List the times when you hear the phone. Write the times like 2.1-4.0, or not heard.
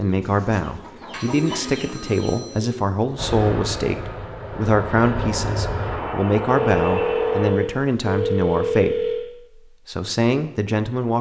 1.1-2.8, 6.5-9.2.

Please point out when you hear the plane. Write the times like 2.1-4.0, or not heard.
3.1-7.5.